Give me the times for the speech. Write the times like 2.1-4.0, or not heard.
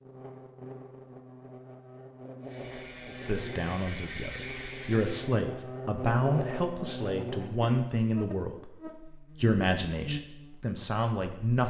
3.1-11.6.